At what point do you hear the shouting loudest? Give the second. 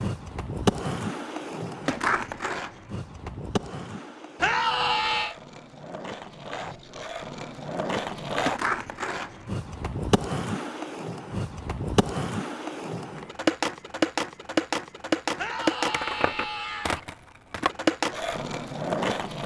5 s.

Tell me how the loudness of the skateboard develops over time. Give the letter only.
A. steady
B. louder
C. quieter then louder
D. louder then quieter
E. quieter
C.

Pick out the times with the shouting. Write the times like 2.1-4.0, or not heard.
4.3-5.3, 15.3-17.0.